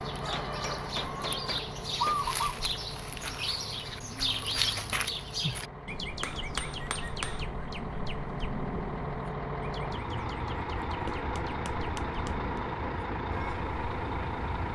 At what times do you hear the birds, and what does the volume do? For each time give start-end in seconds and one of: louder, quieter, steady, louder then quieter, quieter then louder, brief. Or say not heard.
0.0-14.4 quieter.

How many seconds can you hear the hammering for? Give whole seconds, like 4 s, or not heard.
5 s.